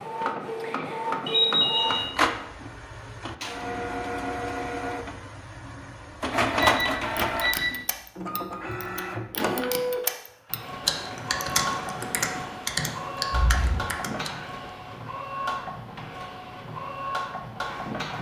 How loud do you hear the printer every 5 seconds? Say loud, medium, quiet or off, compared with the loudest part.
loud, loud, medium, medium.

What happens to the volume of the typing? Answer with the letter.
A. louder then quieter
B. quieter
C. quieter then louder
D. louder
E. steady
D.